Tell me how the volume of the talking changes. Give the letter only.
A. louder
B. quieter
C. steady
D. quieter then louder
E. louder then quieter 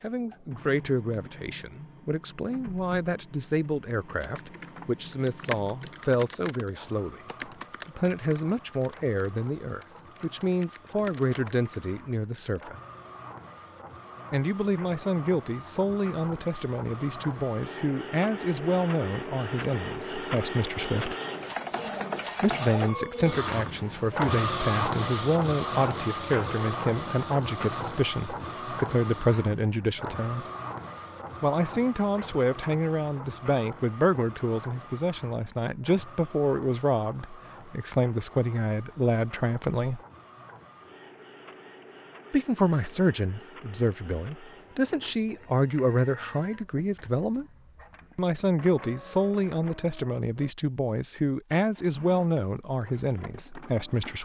C.